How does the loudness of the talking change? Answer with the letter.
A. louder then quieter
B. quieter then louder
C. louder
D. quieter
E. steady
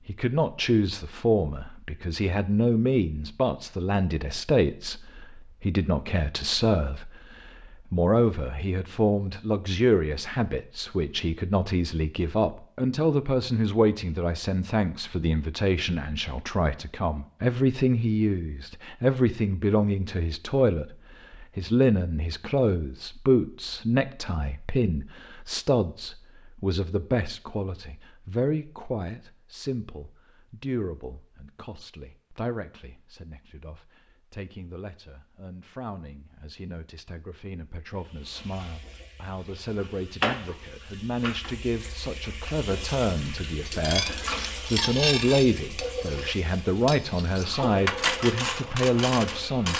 B.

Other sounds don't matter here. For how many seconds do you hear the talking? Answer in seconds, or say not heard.
50 s.